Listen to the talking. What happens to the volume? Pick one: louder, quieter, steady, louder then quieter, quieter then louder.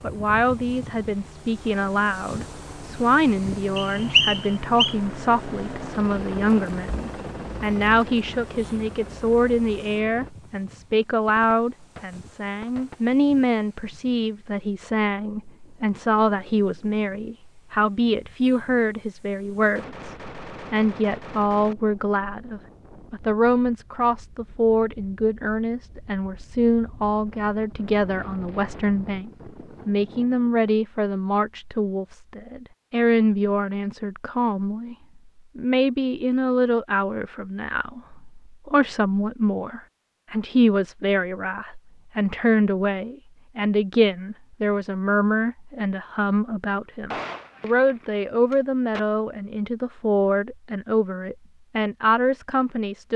steady.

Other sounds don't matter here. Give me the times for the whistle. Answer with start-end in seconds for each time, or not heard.
3.8-5.0.